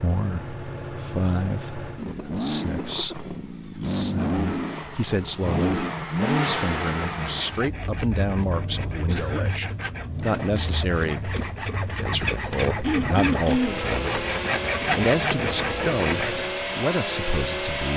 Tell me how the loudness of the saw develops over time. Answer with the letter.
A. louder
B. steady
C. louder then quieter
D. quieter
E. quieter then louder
A.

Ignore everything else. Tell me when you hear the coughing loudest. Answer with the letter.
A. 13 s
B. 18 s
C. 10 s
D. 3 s
A.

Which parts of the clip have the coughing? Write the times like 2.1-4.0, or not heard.
2.1-3.3, 9.1-9.6, 12.8-13.8.